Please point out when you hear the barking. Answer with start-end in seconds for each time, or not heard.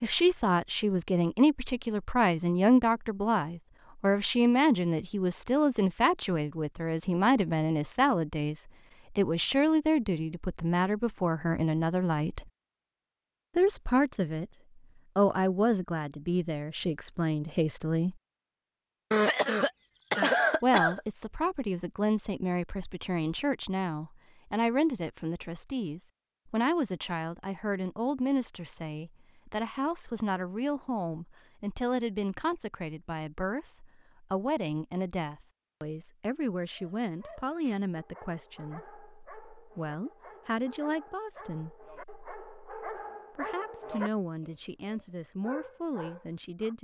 36.7-46.7.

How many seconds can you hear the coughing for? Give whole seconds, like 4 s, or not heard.
2 s.